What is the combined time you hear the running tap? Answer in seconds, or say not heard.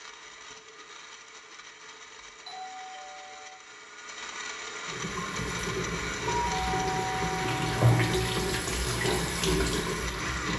6 s.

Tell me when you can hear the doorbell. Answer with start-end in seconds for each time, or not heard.
2.5-3.5, 6.2-8.4.